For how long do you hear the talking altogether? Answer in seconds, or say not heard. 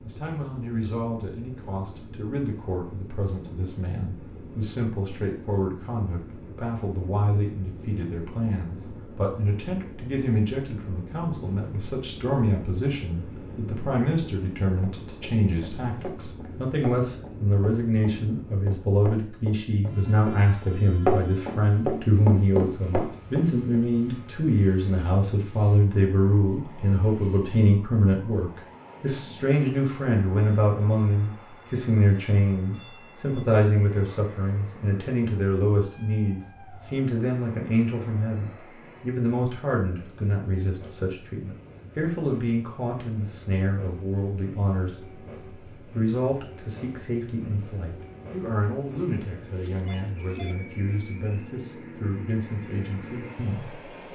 53 s.